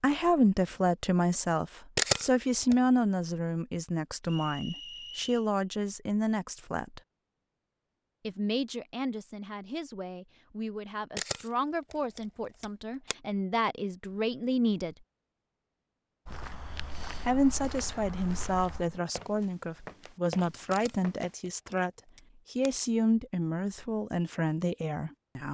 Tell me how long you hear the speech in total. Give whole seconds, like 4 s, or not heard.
22 s.